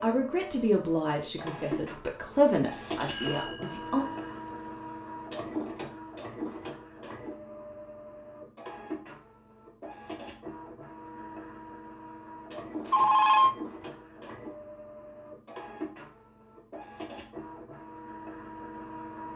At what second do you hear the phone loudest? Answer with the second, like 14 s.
13 s.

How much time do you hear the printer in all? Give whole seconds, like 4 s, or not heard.
19 s.